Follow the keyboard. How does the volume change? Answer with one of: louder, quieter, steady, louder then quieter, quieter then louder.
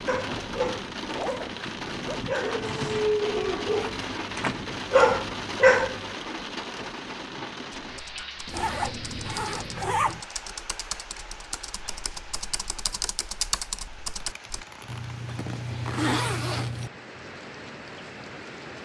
louder.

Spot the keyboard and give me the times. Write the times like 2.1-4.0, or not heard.
7.8-14.7.